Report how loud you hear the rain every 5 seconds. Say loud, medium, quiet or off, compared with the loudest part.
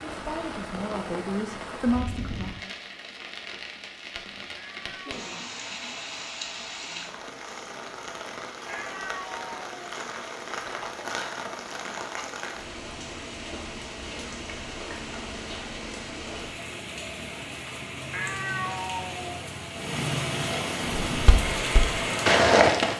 medium, medium, medium, medium, loud.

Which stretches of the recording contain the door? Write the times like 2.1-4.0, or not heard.
not heard.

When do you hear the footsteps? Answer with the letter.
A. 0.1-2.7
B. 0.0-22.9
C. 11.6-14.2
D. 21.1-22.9
D.